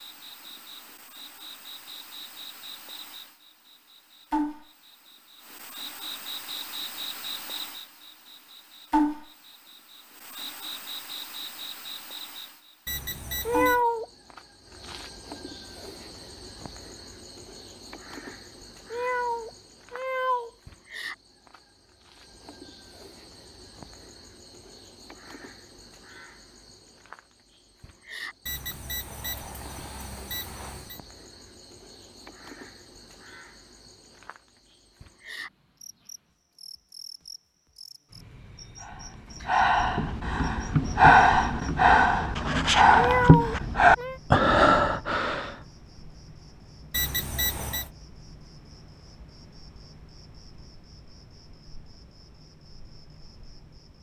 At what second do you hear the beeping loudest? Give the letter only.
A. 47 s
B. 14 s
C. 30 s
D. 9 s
A.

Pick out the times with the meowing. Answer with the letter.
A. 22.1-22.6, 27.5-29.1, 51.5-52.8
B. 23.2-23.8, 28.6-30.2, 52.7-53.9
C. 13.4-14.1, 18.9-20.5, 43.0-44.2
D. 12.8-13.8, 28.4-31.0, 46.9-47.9
C.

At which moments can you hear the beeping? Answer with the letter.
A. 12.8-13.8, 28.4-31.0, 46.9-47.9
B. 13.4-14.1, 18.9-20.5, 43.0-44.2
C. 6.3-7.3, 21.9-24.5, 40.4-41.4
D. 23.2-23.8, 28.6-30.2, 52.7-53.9
A.